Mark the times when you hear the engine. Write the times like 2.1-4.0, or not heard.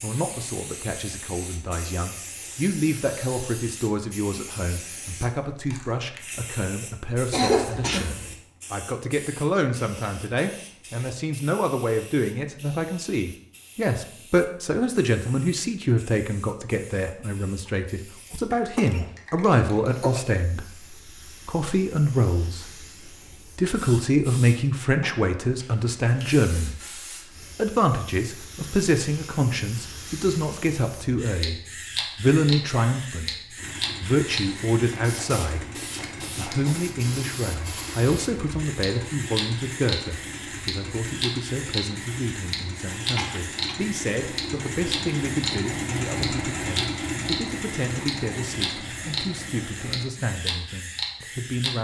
33.5-50.1.